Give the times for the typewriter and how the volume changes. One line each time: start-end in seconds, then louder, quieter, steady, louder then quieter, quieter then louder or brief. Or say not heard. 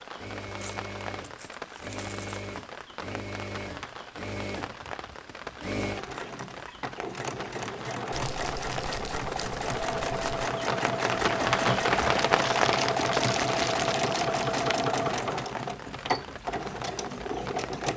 not heard.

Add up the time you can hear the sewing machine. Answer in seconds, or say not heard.
18 s.